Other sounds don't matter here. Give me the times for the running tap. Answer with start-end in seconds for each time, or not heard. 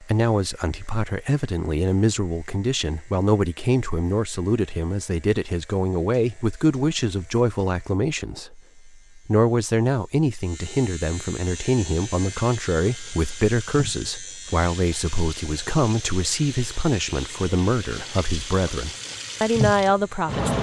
11.4-20.5.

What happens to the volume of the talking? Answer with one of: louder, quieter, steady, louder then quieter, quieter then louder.
steady.